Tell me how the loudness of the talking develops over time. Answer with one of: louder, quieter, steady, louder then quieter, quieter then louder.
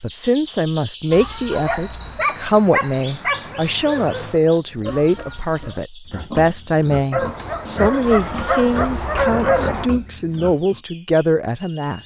steady.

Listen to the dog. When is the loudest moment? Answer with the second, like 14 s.
9 s.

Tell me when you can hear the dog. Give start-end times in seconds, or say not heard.
1.5-4.3, 7.1-9.9.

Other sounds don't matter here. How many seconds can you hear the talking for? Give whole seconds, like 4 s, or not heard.
12 s.